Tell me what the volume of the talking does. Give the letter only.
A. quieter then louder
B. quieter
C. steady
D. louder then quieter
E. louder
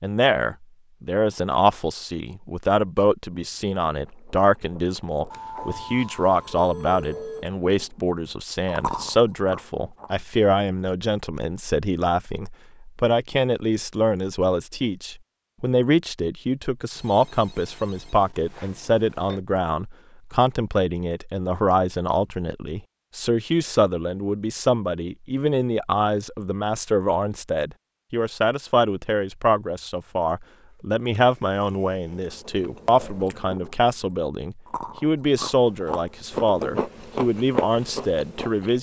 C.